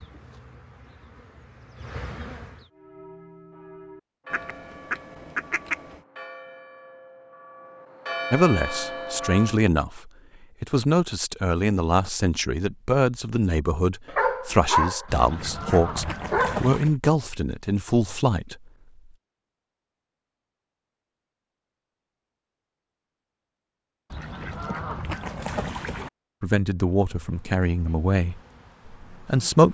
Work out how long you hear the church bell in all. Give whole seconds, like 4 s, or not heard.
7 s.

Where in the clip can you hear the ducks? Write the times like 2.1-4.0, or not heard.
4.3-6.0, 15.1-16.9, 24.1-26.1.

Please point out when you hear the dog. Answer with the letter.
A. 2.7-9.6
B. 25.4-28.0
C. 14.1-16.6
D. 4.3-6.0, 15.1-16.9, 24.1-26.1
C.